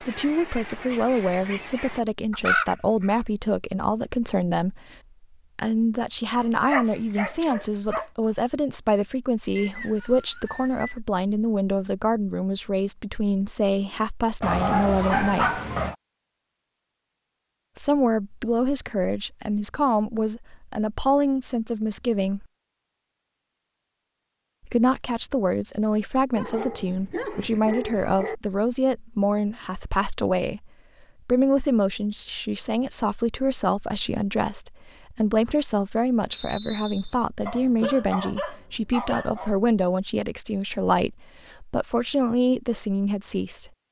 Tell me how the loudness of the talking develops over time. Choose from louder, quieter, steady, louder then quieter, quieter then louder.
steady.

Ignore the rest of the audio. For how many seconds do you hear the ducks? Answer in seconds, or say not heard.
3 s.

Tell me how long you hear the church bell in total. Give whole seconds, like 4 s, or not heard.
not heard.